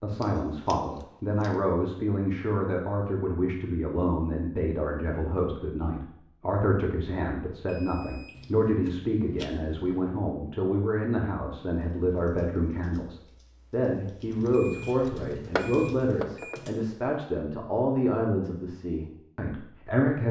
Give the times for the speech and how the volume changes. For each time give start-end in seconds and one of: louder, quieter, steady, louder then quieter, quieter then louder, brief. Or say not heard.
0.0-20.2 steady.